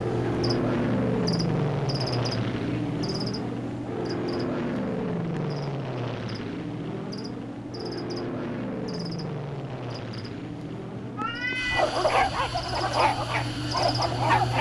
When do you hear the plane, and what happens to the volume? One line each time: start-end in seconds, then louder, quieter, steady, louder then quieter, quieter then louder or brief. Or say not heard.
0.0-14.5 quieter.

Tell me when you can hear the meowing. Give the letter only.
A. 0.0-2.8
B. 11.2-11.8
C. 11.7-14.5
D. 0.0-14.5
B.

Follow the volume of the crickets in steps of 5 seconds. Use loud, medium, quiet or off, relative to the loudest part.
loud, medium, loud.